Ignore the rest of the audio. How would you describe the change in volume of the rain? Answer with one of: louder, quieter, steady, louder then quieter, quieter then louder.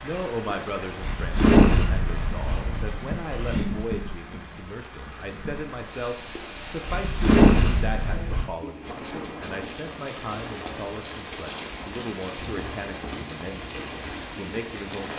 louder.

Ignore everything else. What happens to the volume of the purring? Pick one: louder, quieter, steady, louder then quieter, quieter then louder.
quieter then louder.